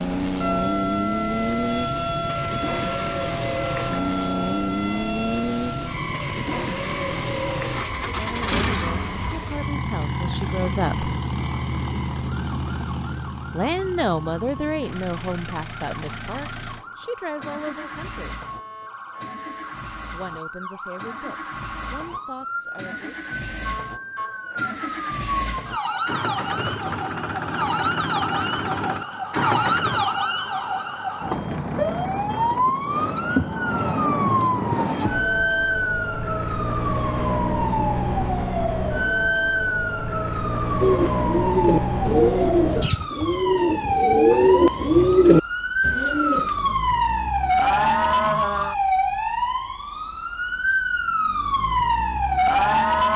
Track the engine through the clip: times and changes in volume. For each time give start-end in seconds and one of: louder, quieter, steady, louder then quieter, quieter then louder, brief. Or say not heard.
0.0-30.2 quieter then louder.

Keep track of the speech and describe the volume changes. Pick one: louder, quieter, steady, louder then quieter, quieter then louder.
louder then quieter.